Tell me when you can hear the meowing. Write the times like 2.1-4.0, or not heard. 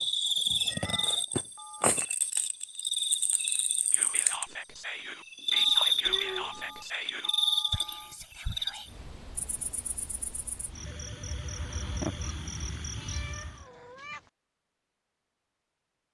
0.7-1.2, 6.0-6.8, 12.9-14.3.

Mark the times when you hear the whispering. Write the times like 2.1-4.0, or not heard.
3.9-8.9.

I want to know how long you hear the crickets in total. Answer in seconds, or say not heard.
14 s.